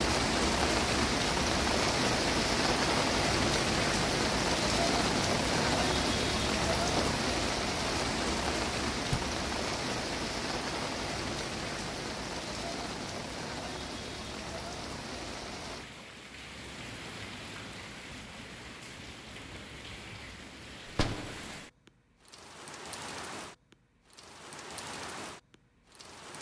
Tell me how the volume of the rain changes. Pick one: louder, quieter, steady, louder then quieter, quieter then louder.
quieter.